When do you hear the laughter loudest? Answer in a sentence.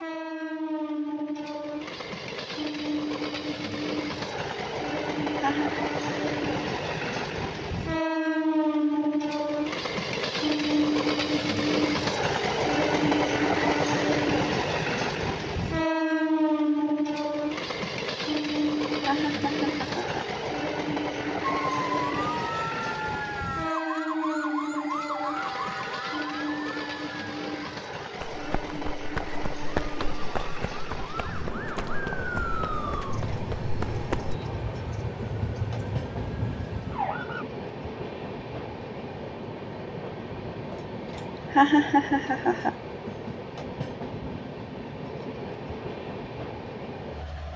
The loudest moment of the laughter is at 42 seconds.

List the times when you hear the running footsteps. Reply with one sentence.
The running footsteps can be heard from 28.2 to 34.4 s.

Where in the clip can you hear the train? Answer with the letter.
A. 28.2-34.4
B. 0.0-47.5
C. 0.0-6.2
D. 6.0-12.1
B.